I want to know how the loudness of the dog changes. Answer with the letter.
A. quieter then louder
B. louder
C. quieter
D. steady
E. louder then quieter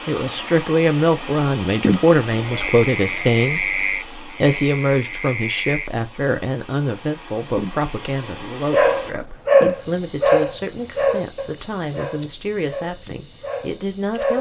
C.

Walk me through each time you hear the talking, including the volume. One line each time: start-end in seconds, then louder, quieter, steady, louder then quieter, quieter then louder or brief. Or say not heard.
0.1-14.3 quieter.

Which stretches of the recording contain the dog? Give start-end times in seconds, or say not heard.
8.7-14.3.